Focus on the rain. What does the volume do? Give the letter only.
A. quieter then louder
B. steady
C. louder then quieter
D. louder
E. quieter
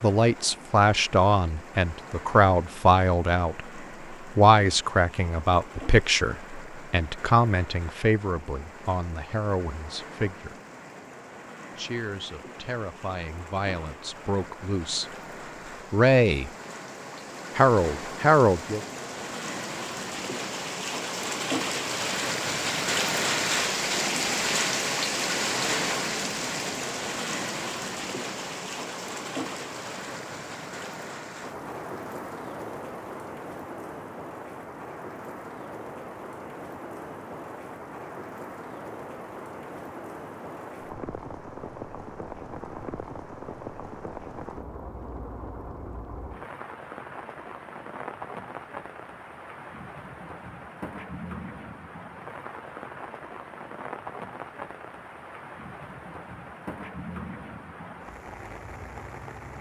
C.